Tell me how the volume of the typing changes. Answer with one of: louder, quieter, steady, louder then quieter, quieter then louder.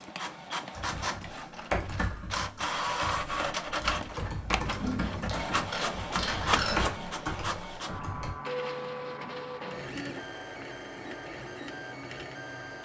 quieter then louder.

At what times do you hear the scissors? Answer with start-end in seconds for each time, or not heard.
4.8-6.8.